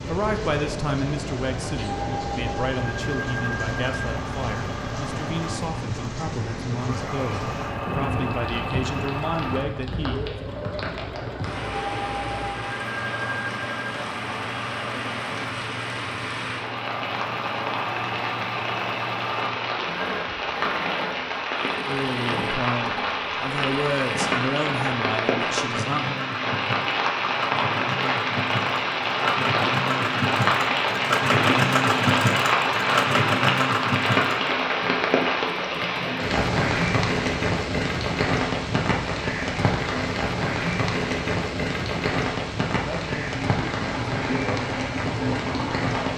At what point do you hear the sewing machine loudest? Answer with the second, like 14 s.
32 s.